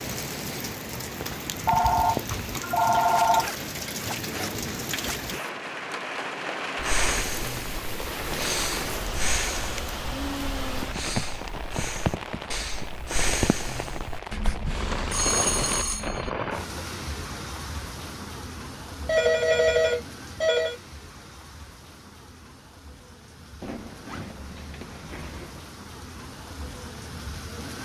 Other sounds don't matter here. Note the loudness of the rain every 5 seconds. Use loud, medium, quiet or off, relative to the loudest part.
loud, loud, loud, loud, quiet, medium.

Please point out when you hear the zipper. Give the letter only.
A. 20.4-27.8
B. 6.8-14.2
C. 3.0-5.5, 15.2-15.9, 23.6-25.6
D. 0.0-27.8
C.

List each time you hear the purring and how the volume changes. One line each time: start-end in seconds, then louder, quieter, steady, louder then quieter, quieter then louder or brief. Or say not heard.
not heard.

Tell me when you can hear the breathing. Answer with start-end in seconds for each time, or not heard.
6.8-14.2.